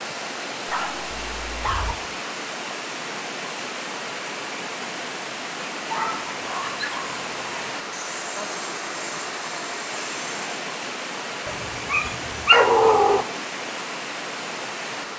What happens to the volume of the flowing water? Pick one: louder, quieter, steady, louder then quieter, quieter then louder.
steady.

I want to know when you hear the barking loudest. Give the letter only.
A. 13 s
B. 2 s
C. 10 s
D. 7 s
A.